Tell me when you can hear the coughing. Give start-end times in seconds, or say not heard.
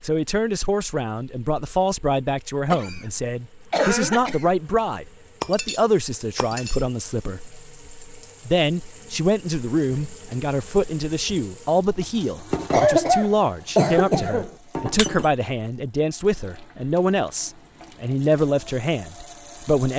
2.7-4.6, 12.7-14.5.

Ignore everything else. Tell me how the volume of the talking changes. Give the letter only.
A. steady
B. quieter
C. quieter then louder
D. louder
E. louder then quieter
A.